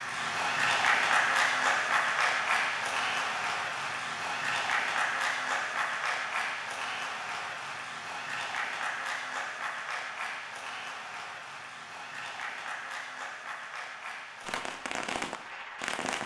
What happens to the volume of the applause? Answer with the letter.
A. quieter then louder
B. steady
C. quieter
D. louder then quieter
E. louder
C.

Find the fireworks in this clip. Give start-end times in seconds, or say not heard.
14.4-16.2.